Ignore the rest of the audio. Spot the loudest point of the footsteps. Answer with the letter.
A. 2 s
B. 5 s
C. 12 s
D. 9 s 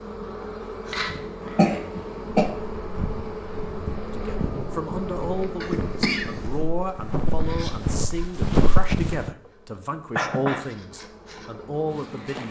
D.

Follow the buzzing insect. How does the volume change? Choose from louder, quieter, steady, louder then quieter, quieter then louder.
quieter.